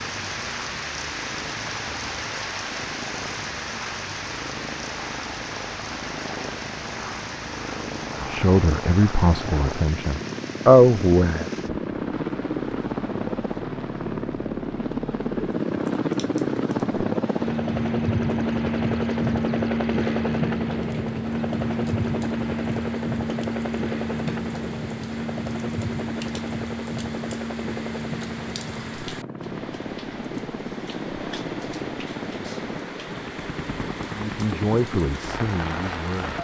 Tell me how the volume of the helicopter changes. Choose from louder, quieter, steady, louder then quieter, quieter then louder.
louder then quieter.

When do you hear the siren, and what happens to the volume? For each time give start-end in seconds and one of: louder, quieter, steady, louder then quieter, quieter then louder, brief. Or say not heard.
not heard.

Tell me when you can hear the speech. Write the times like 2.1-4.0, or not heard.
8.2-11.4, 34.1-36.3.